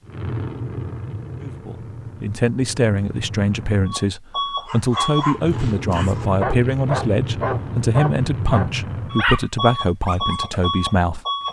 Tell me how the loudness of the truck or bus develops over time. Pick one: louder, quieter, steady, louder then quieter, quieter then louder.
louder.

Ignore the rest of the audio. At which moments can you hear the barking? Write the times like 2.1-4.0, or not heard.
4.7-11.4.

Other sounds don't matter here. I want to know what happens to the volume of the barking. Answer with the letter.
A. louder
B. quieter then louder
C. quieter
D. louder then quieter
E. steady
D.